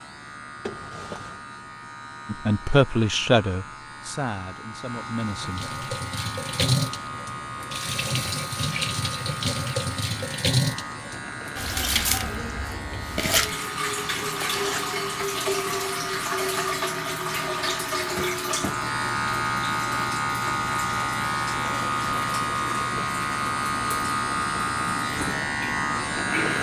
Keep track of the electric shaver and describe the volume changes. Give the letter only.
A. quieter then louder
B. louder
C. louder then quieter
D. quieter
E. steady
B.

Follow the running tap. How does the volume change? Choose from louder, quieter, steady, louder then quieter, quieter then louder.
quieter.